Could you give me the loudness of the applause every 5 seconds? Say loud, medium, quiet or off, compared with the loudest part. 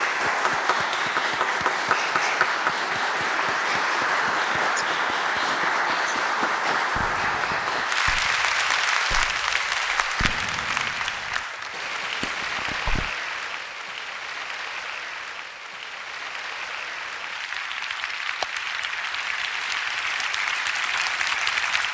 loud, loud, medium, medium, loud.